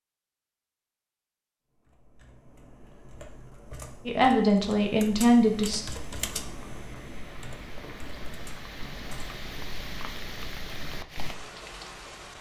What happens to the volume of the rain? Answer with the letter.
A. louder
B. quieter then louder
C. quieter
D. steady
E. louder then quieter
A.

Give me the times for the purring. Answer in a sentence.
The purring can't be heard in this clip.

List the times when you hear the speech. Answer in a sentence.
You can hear the speech from 4.0 to 5.8 s.